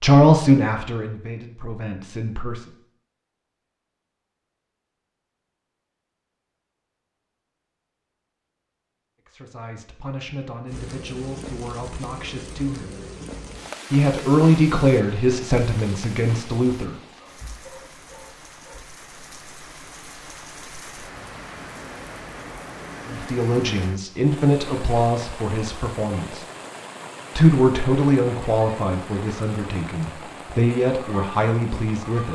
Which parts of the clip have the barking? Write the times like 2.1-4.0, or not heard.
17.0-18.9.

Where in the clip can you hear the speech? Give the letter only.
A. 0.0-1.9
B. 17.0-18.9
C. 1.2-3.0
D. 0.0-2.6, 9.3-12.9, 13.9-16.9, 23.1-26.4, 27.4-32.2
D.